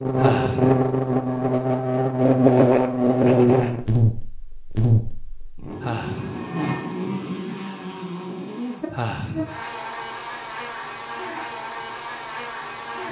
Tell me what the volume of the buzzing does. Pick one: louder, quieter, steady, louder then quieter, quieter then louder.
quieter.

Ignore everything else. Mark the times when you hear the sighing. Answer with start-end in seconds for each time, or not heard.
0.1-0.8, 5.8-6.5, 8.8-9.6.